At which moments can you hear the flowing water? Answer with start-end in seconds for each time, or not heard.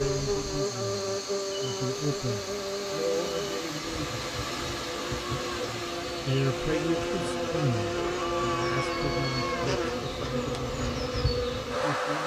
0.0-12.2.